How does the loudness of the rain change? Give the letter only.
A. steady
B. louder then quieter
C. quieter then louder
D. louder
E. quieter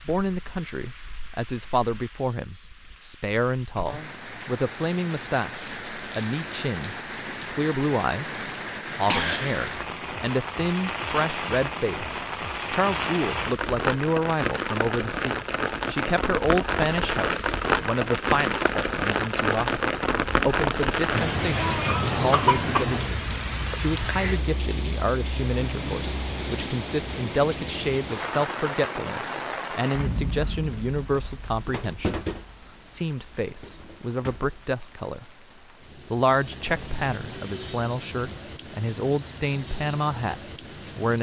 B.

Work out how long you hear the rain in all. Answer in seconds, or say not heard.
41 s.